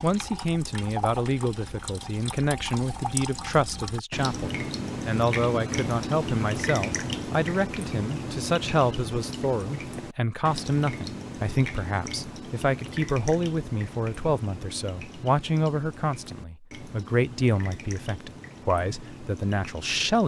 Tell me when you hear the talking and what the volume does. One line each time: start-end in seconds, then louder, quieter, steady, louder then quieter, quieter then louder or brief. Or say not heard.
0.0-20.2 steady.